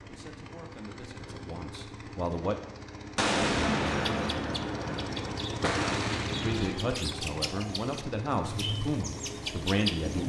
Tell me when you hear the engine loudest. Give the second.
6 s.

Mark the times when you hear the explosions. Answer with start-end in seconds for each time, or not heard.
3.1-6.8.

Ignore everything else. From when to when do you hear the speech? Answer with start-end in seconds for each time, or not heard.
0.1-2.5, 6.4-10.2.